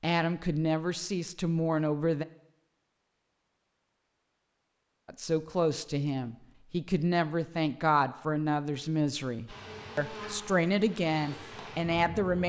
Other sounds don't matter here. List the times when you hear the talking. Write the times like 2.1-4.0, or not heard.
0.0-2.2, 5.0-12.4.